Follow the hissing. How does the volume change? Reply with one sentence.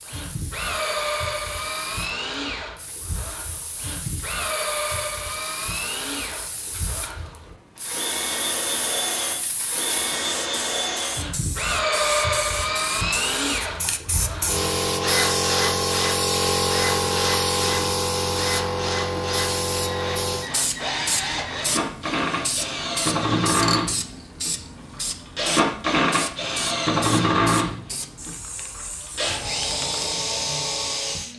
The volume of the hissing goes up, then down.